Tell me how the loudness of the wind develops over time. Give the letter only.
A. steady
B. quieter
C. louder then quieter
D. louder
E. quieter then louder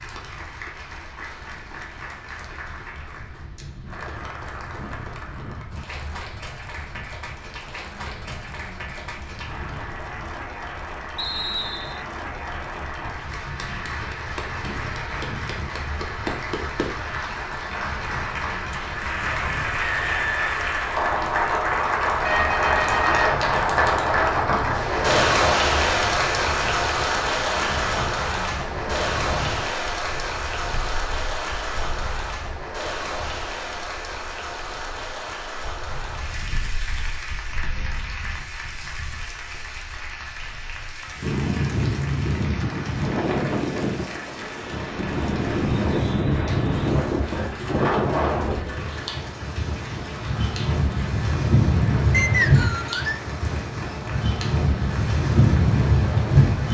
D.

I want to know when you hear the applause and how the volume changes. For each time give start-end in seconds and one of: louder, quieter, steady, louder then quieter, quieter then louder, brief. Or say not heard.
0.0-56.6 louder then quieter.